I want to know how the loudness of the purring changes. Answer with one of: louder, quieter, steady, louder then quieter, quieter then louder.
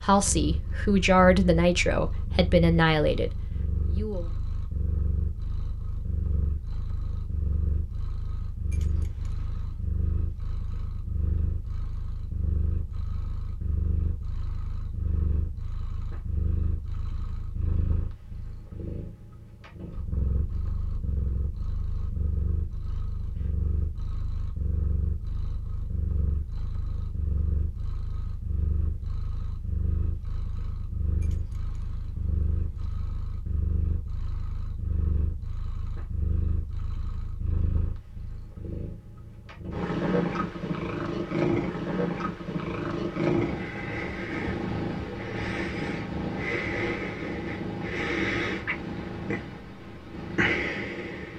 louder.